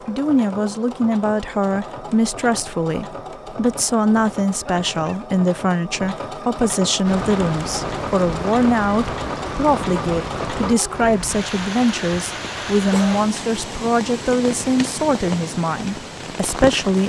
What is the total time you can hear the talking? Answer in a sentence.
You can hear the talking for 17 seconds altogether.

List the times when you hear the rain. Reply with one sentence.
You can hear the rain from 7.0 to 17.0 s.